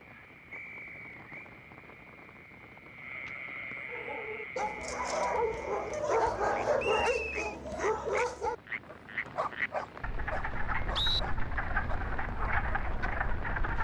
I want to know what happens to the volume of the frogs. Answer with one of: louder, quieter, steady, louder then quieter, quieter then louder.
louder.